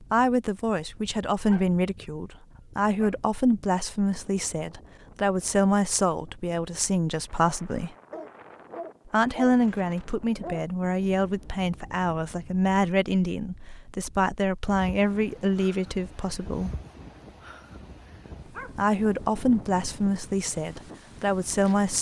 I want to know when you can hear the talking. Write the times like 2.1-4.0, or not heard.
0.1-8.0, 9.1-16.8, 18.8-21.9.